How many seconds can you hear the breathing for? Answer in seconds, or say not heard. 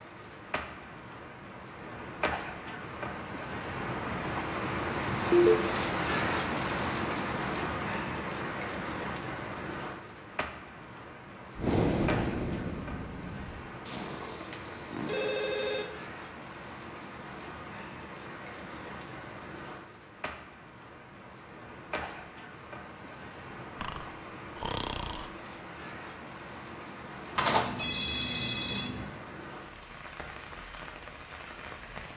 4 s.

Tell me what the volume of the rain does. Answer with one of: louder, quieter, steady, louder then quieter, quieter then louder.
quieter.